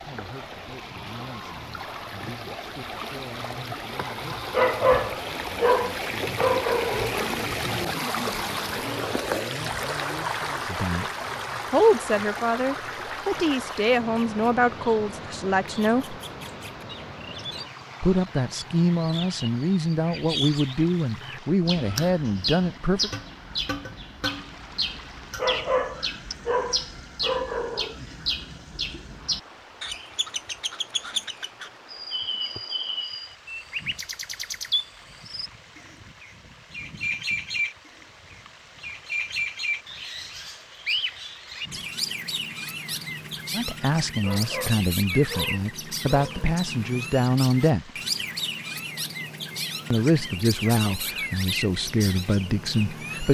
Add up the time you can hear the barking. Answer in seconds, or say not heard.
8 s.